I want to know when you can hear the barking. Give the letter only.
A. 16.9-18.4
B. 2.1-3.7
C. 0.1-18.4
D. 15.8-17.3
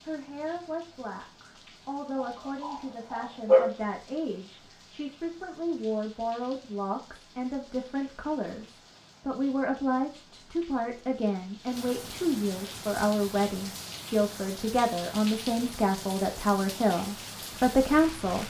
B.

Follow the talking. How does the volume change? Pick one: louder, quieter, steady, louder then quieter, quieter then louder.
louder.